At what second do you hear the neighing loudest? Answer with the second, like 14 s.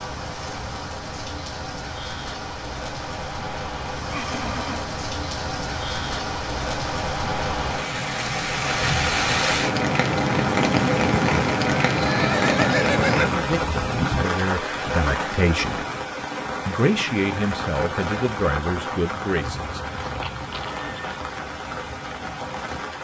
13 s.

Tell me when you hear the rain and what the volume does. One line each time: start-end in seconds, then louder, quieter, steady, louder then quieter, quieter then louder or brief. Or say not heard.
0.0-22.9 louder then quieter.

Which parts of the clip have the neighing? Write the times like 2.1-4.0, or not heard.
4.1-4.9, 11.8-13.3, 20.1-21.2.